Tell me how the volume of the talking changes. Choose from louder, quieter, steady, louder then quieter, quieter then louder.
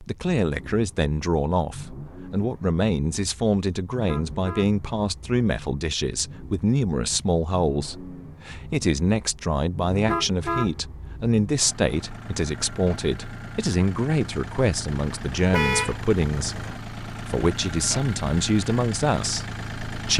steady.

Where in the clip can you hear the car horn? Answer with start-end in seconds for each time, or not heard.
3.9-4.7, 9.9-10.7, 15.5-16.0.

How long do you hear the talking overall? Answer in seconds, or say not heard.
20 s.